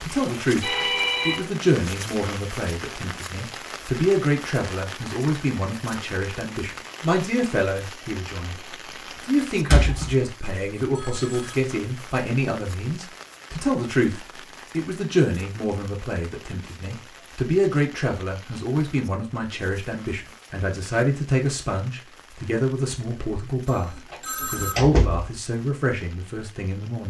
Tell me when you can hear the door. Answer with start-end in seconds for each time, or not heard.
9.7-10.2, 24.1-25.3.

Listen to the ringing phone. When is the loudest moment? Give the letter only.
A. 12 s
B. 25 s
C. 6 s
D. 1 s
D.